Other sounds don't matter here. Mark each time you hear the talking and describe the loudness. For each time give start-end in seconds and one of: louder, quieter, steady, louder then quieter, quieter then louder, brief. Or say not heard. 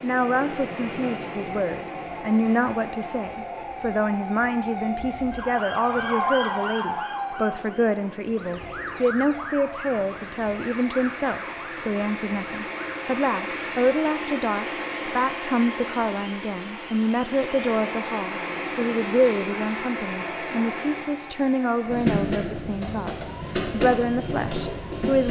0.0-25.2 steady.